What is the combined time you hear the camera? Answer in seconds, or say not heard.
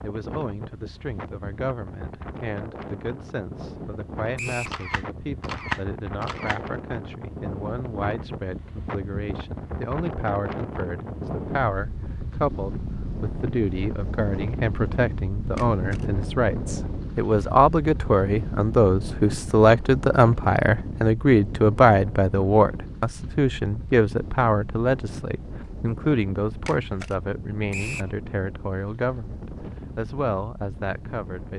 3 s.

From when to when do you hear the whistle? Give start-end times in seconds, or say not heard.
4.3-4.8, 27.7-28.1.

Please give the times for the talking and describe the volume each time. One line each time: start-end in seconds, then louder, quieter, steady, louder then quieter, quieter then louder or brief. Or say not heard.
0.0-31.5 louder then quieter.